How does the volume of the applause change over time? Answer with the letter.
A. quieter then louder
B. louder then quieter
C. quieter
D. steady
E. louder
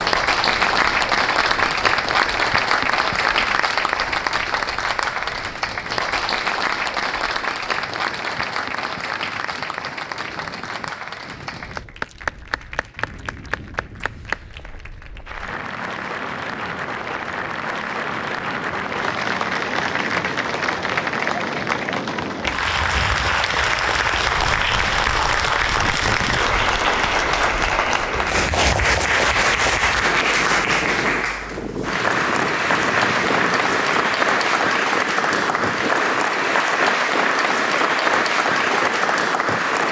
A.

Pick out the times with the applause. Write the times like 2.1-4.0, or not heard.
0.0-39.8.